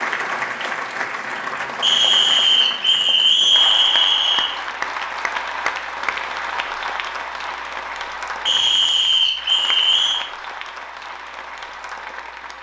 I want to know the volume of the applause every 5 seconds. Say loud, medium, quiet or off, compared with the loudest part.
loud, loud, medium.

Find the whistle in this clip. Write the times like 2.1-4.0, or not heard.
1.8-4.5, 8.4-10.2.